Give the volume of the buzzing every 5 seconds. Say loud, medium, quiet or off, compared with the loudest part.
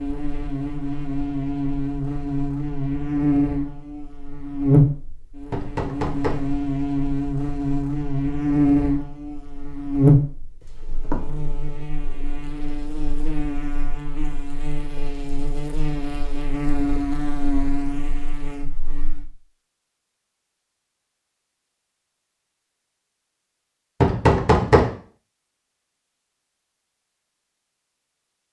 loud, loud, loud, medium, off, off.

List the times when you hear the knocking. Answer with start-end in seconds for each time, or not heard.
5.5-6.5, 10.6-11.2, 24.0-24.9.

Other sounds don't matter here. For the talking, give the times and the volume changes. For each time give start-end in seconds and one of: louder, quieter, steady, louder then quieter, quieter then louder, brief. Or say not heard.
not heard.